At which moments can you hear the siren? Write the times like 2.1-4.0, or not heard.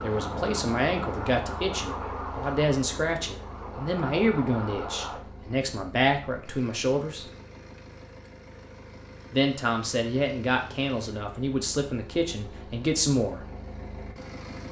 0.0-5.2.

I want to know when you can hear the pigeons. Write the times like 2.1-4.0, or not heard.
not heard.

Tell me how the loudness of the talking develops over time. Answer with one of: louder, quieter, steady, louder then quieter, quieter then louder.
steady.